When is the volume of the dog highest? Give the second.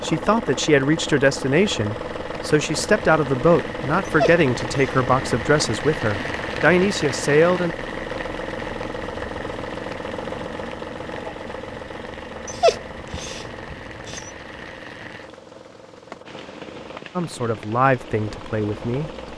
13 s.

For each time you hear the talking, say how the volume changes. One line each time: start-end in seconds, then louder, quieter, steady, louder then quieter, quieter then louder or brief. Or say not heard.
0.0-7.7 steady
17.1-19.1 brief.